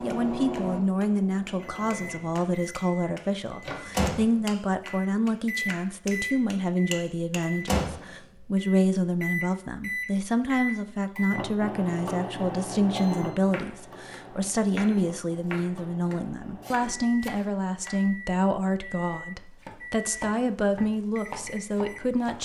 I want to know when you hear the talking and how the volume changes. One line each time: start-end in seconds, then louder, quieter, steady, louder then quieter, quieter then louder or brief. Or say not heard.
0.0-22.4 steady.